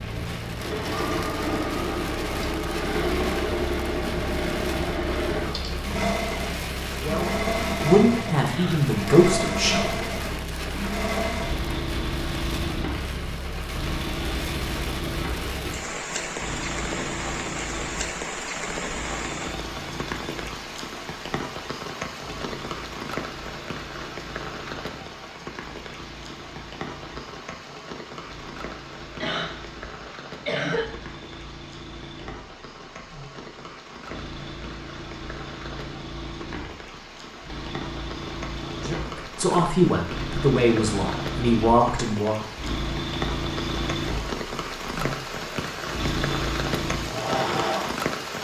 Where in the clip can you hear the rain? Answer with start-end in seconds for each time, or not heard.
0.0-48.3.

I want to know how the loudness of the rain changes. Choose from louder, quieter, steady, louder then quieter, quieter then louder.
quieter then louder.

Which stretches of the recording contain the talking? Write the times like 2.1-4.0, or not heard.
7.0-10.1, 38.8-42.4.